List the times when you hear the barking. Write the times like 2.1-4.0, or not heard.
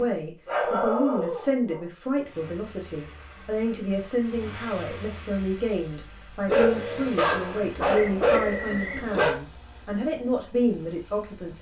0.5-1.8, 6.5-9.3.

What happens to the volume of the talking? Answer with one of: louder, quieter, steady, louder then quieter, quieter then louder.
steady.